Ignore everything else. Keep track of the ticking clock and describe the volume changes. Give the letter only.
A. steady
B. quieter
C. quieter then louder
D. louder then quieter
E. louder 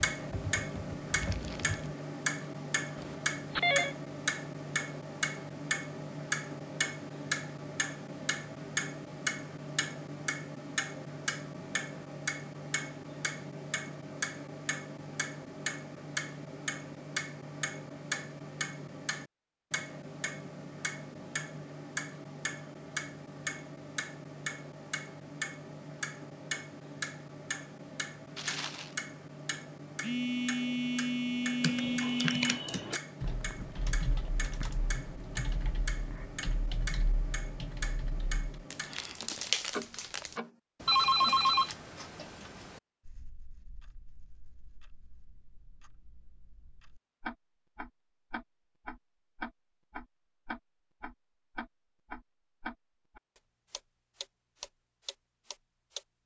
B.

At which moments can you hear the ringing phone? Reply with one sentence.
The ringing phone can be heard from 3.0 to 4.0 s, from 30.0 to 32.6 s and from 40.9 to 41.7 s.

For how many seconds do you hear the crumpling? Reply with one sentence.
The crumpling can be heard for 3 seconds in total.